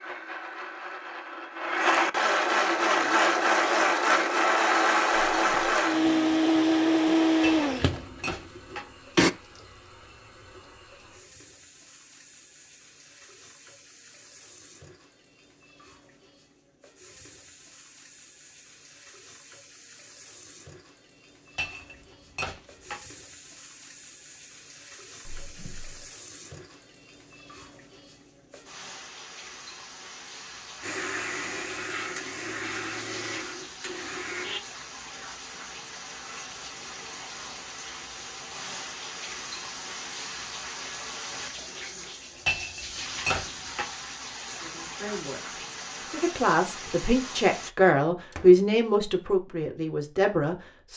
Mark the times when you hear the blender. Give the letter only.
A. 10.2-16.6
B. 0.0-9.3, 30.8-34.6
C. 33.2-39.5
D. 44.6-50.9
B.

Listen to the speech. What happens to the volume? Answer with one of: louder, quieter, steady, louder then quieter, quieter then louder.
louder then quieter.